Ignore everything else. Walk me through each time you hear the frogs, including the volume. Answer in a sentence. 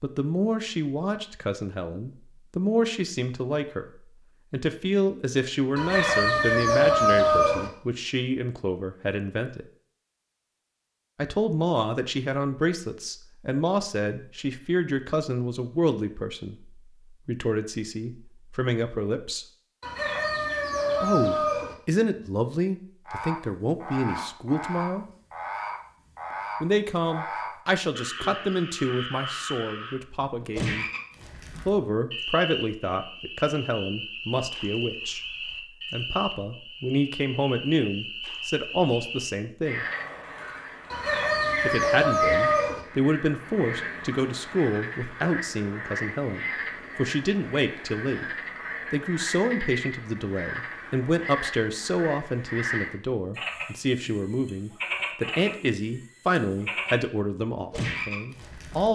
The frogs can be heard from 23.1 to 58.9 s, at a steady volume.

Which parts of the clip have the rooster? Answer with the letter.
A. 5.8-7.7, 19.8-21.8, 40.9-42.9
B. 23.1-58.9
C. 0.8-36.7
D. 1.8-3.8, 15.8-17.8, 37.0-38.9
A.